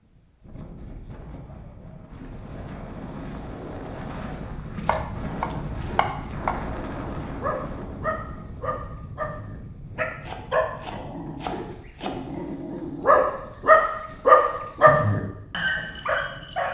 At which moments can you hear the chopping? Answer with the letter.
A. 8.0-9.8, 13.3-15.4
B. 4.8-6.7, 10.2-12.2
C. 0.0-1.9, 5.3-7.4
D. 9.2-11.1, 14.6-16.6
B.